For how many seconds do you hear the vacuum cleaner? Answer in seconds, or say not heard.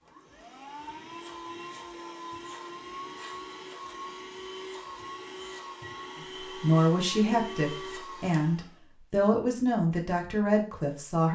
9 s.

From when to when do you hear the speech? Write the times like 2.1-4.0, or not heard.
6.4-11.3.